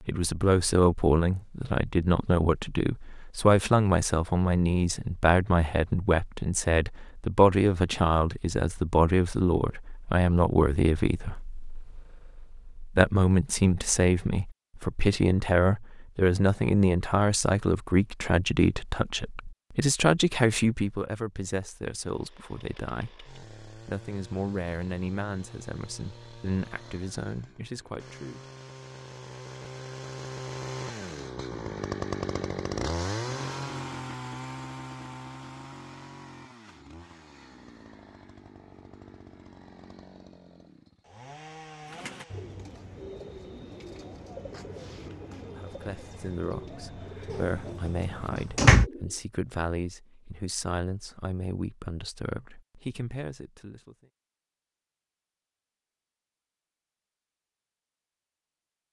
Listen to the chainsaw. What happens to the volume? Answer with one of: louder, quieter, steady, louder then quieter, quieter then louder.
louder then quieter.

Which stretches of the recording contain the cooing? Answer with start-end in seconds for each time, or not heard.
41.8-49.2.